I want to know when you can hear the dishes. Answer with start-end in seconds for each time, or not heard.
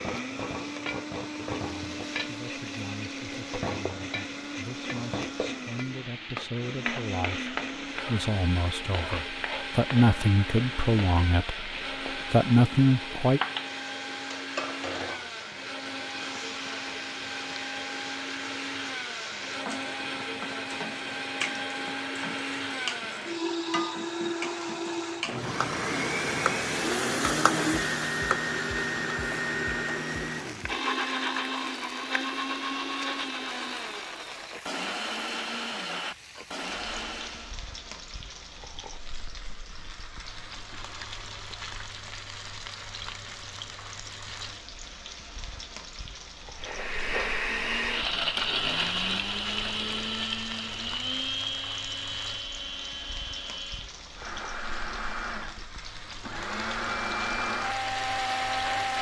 not heard.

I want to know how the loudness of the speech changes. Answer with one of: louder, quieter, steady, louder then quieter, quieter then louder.
louder.